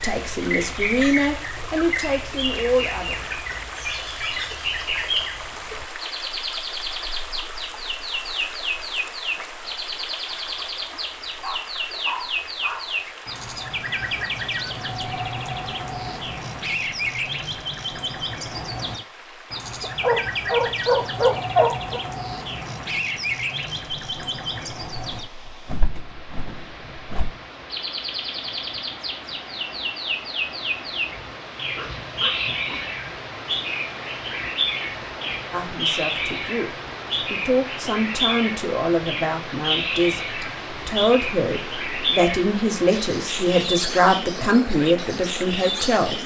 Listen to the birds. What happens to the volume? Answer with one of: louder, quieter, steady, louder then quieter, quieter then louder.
steady.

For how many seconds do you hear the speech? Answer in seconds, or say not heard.
13 s.